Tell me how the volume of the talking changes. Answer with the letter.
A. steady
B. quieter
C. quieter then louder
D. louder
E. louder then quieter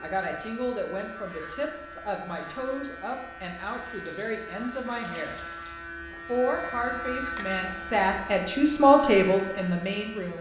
D.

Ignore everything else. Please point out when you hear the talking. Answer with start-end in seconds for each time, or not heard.
0.0-5.3, 6.2-10.3.